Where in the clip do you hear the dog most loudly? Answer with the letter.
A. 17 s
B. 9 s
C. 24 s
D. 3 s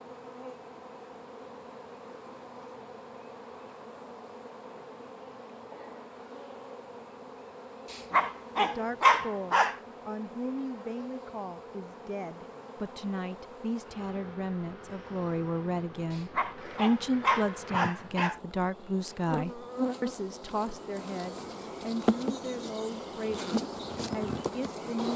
B.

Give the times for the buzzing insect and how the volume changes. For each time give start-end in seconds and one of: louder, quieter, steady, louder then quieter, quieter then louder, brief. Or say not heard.
0.0-25.1 louder.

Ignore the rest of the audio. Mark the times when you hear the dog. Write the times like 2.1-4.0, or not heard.
7.9-9.8, 16.1-18.4.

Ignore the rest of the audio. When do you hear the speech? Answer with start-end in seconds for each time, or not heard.
8.6-25.1.